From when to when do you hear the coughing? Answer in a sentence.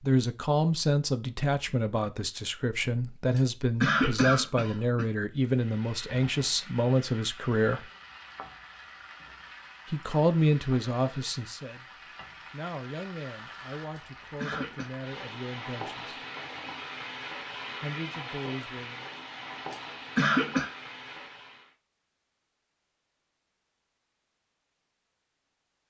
You can hear the coughing from 3.4 to 5.0 s, from 13.9 to 14.9 s and from 19.7 to 20.7 s.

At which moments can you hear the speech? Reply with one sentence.
The speech can be heard from 0.0 to 7.9 s, from 9.8 to 11.8 s, from 12.5 to 16.2 s and from 17.8 to 19.1 s.